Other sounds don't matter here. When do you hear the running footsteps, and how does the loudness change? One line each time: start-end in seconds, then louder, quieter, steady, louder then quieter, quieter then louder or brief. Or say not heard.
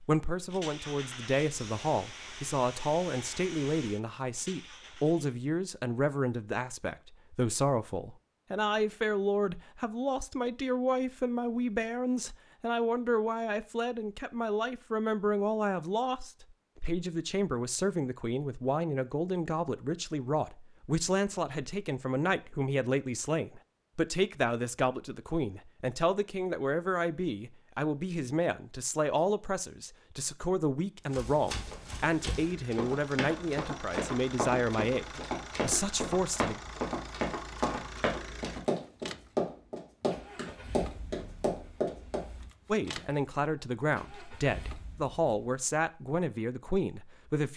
31.1-42.2 louder.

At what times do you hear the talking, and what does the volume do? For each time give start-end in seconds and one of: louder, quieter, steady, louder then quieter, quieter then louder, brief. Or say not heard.
0.0-36.6 steady
42.7-47.5 steady.